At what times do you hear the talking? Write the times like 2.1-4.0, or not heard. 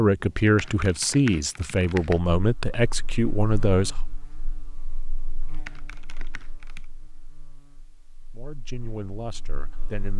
0.0-4.0, 8.3-10.1.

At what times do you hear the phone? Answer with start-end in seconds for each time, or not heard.
not heard.